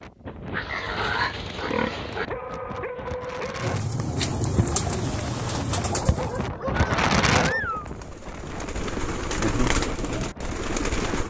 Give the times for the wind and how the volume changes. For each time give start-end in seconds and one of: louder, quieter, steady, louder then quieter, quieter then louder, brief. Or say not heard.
0.0-11.2 louder then quieter.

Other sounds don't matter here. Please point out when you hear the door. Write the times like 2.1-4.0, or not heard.
not heard.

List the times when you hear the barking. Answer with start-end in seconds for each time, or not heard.
2.2-3.8, 5.9-7.8.